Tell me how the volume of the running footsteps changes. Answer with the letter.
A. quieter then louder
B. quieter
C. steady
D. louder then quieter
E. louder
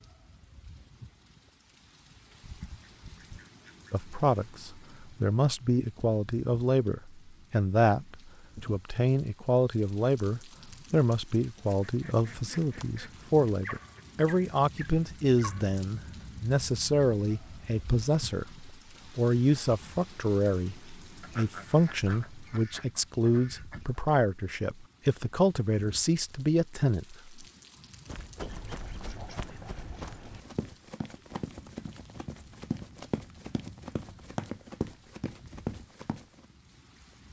E.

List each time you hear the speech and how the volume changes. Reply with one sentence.
The speech can be heard from 3.9 to 27.4 s, at a steady volume.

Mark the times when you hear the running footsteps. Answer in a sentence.
You can hear the running footsteps from 28.1 to 36.5 s.